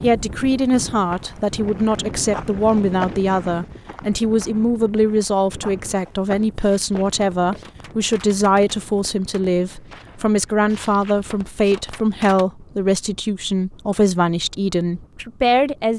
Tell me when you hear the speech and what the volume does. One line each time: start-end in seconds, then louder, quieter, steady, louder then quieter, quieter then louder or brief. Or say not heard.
0.0-15.9 steady.